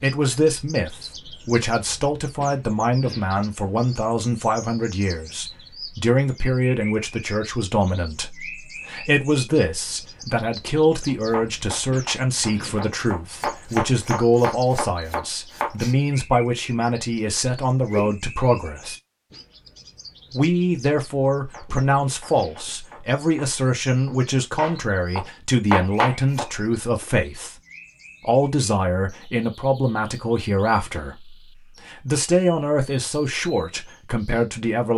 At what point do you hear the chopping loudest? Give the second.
26 s.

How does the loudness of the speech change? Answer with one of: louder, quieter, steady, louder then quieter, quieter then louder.
steady.